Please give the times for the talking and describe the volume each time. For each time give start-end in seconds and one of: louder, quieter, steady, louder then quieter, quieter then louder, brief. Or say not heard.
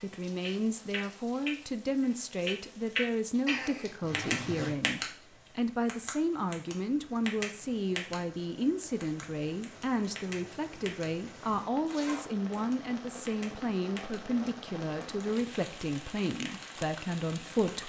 0.0-17.8 steady.